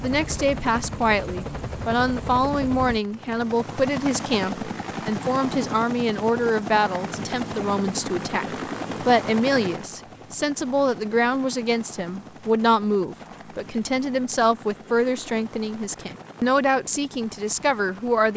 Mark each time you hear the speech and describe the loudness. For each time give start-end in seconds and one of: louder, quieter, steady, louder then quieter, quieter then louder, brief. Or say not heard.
0.0-18.3 steady.